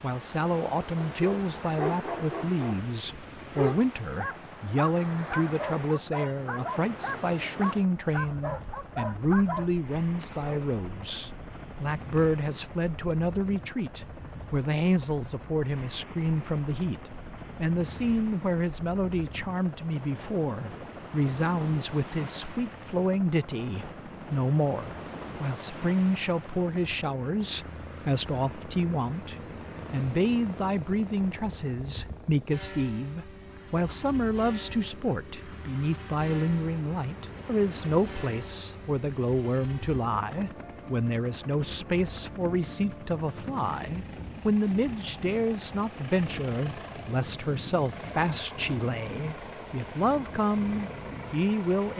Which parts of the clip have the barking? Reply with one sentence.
You can hear the barking from 0.9 to 10.7 s.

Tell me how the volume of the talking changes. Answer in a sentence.
The volume of the talking stays about the same.